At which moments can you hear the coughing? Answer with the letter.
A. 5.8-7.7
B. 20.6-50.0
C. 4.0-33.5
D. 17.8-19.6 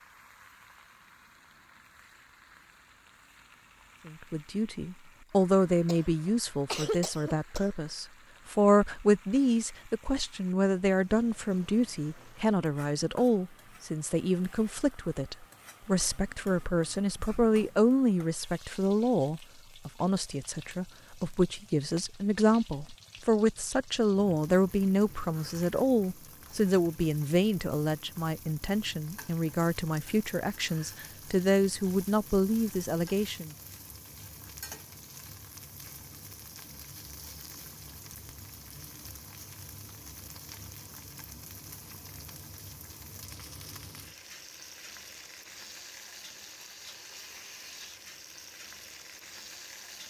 A.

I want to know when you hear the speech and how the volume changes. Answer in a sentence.
You can hear the speech from 4.0 to 33.5 s, at a steady volume.